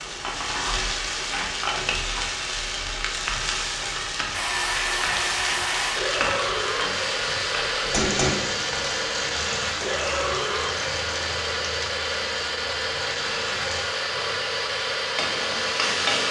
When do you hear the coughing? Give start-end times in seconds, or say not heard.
not heard.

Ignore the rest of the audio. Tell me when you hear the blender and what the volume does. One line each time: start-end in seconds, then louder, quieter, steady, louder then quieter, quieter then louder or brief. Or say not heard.
4.3-16.2 steady.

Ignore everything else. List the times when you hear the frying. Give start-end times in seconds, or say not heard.
0.0-16.2.